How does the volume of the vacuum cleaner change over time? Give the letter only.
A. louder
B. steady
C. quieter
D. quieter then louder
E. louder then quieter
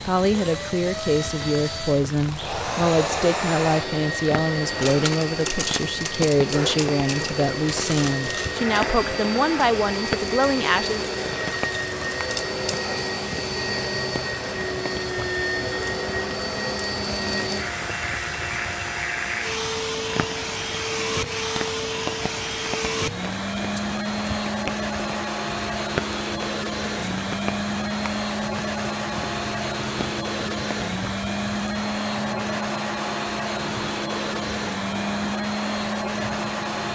B.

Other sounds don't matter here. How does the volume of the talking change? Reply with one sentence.
The volume of the talking stays about the same.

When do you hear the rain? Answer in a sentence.
You can hear the rain from 0.0 to 36.9 s.